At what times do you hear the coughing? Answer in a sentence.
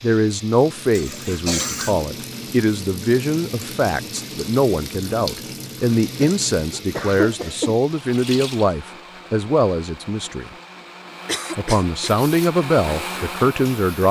The coughing can be heard from 0.9 to 1.9 s, from 6.2 to 7.8 s and from 11.2 to 12.2 s.